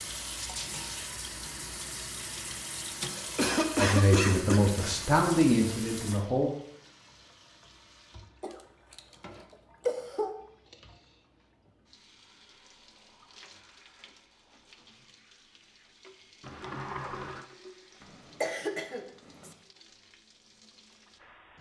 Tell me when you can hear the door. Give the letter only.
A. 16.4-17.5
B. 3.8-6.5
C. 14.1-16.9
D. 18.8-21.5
A.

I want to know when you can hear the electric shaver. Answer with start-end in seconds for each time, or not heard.
not heard.